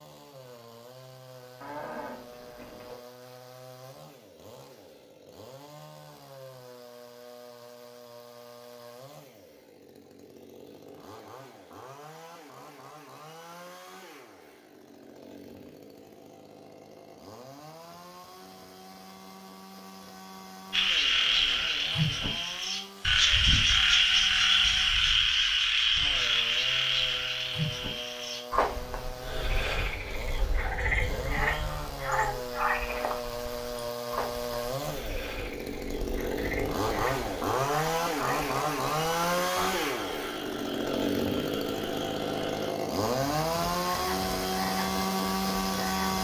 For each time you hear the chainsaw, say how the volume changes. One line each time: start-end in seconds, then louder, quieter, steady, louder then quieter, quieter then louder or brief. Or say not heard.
0.0-46.1 louder.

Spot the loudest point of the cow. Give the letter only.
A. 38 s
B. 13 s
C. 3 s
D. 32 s
D.